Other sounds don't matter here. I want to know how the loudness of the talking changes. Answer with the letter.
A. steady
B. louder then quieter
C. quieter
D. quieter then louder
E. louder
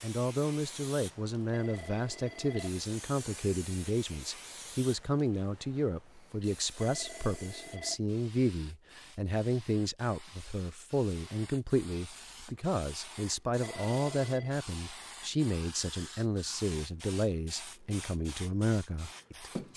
A.